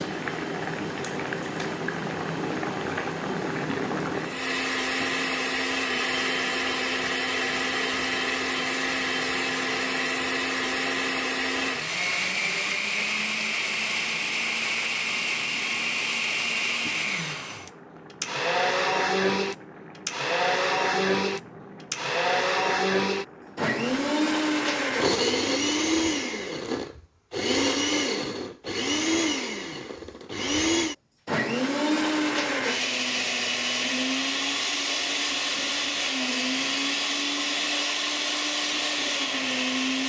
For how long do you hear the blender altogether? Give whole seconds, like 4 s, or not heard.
40 s.